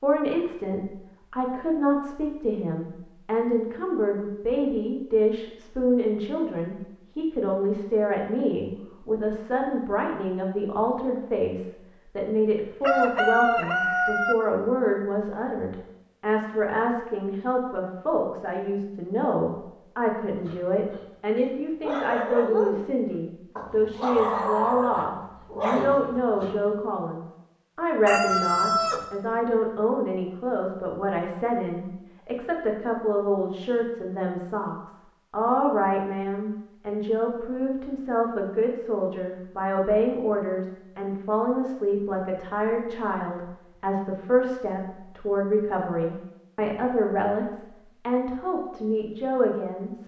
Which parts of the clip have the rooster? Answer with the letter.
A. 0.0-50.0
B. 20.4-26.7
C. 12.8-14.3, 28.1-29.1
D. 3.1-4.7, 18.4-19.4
C.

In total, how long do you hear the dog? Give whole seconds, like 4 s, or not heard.
6 s.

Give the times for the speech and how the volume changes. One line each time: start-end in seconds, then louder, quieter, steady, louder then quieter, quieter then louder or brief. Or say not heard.
0.0-50.0 steady.